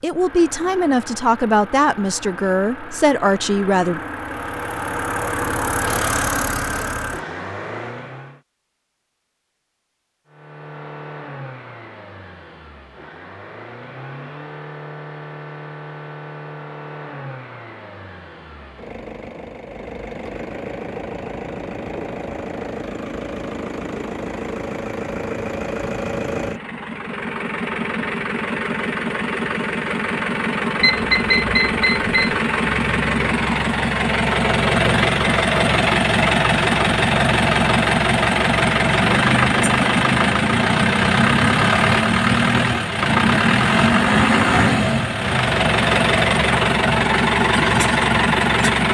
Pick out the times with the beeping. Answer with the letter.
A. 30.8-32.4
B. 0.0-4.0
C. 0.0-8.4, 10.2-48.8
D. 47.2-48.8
A.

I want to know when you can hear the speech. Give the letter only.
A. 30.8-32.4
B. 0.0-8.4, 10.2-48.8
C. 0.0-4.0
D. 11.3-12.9
C.